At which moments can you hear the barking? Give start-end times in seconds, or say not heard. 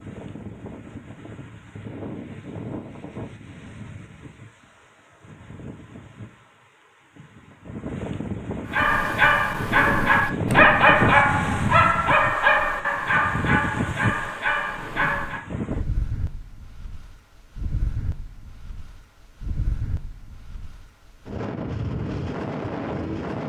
8.7-15.4.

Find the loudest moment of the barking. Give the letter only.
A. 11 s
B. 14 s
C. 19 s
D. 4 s
A.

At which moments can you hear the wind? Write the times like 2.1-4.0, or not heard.
0.0-23.4.